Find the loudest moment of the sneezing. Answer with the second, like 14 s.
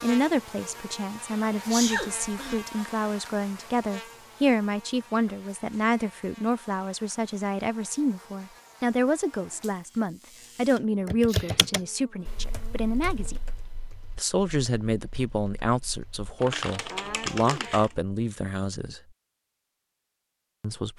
2 s.